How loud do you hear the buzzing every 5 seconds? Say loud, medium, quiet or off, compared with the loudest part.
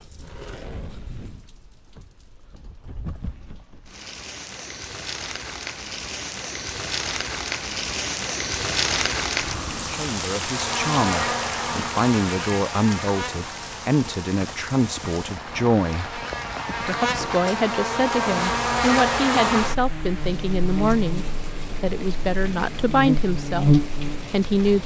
off, off, medium, loud, loud.